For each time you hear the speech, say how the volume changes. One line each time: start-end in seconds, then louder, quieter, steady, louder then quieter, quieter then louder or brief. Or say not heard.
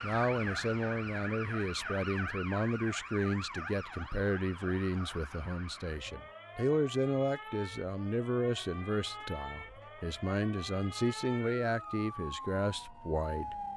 0.0-13.6 steady.